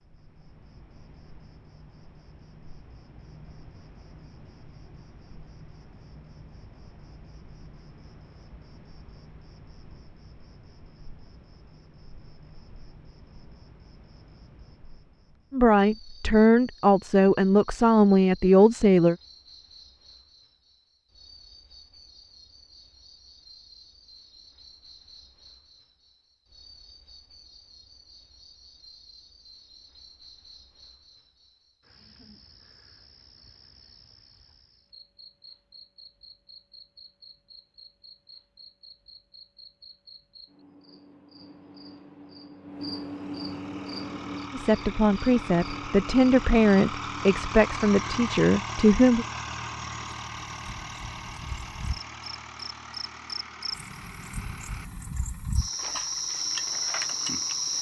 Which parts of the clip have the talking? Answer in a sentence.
You can hear the talking from 15.5 to 19.1 s and from 44.5 to 49.2 s.